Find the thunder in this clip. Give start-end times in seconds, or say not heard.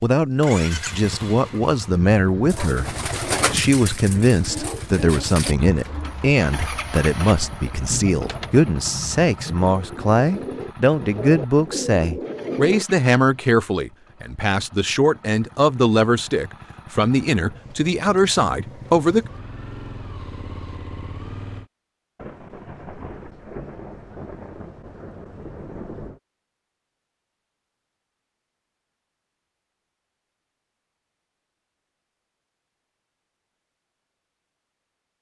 7.9-9.7, 22.1-26.2.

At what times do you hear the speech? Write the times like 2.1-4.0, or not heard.
0.0-19.2.